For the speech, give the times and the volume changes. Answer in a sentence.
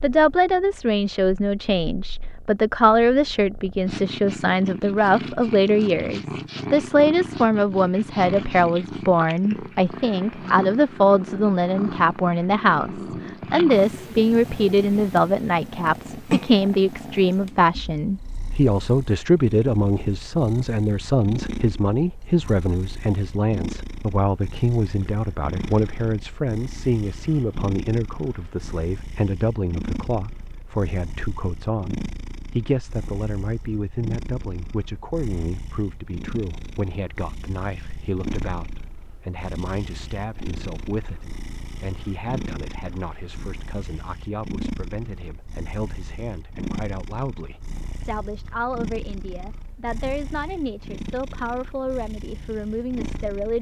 You can hear the speech from 0.0 to 53.5 s, getting quieter.